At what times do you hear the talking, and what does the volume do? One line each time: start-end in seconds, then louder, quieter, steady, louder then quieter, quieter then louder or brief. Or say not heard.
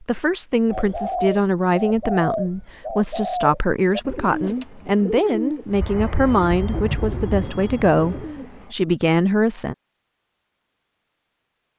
0.0-9.8 steady.